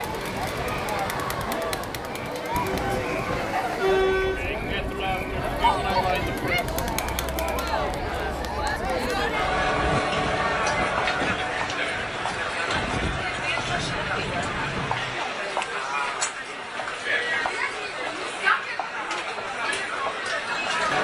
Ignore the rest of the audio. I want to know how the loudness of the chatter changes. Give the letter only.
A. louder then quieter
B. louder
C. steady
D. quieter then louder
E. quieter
C.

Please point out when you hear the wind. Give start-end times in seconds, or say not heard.
0.0-15.2.